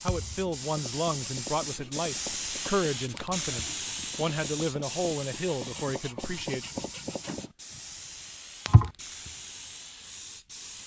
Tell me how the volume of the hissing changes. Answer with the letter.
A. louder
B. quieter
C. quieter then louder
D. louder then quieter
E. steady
B.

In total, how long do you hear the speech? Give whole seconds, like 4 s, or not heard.
7 s.